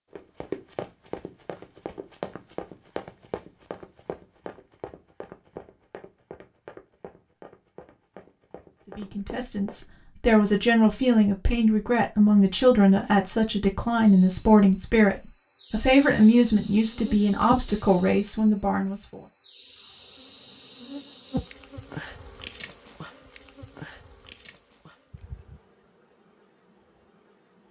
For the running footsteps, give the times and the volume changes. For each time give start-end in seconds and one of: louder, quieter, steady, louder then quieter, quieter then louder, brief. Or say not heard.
0.1-9.8 quieter.